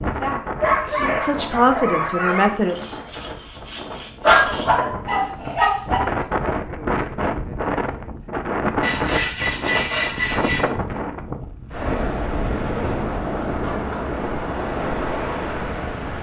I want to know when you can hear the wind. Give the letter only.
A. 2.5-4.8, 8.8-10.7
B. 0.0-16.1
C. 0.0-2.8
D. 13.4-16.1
B.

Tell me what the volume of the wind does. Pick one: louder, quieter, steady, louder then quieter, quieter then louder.
louder.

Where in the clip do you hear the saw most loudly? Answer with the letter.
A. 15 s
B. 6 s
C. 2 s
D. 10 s
D.